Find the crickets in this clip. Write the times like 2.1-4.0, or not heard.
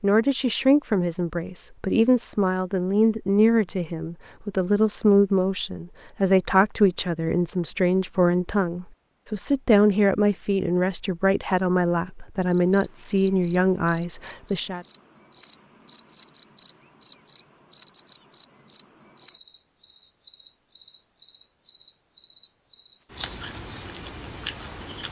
12.5-25.0.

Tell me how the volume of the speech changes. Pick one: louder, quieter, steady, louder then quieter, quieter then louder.
steady.